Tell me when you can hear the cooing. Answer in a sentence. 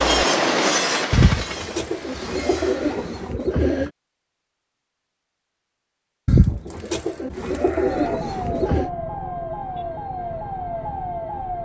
The cooing can be heard from 1.1 to 3.9 s and from 6.2 to 8.9 s.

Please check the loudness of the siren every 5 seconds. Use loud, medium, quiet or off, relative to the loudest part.
off, loud, loud.